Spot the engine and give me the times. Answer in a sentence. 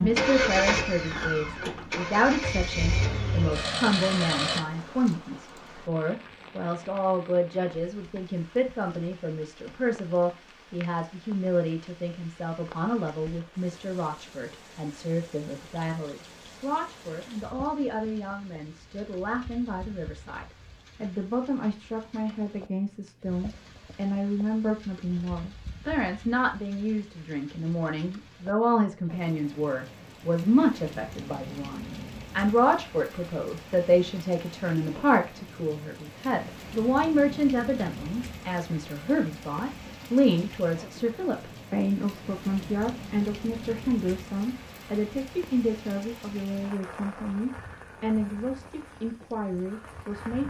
The engine can be heard from 0.0 to 4.6 s.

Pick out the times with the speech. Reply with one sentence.
You can hear the speech from 0.0 to 50.4 s.